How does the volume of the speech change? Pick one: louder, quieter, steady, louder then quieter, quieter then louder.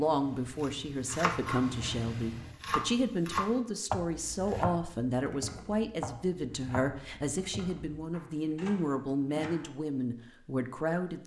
steady.